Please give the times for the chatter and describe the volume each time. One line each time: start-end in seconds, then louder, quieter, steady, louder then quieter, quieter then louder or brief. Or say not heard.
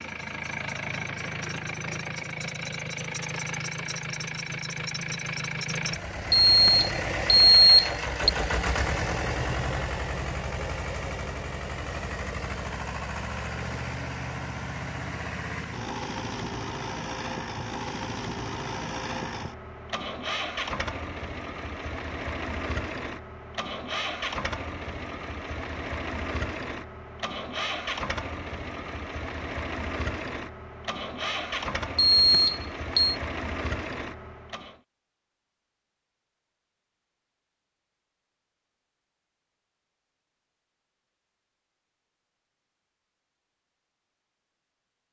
not heard.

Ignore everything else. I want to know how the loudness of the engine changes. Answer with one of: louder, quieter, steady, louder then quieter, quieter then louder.
steady.